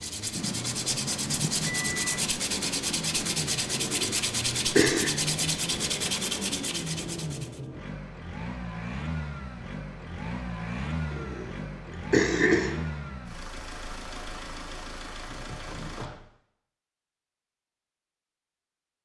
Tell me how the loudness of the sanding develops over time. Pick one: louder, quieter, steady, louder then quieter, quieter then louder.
steady.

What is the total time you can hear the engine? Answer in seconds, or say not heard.
16 s.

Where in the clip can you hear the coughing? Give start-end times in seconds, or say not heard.
3.8-5.1, 11.1-12.8.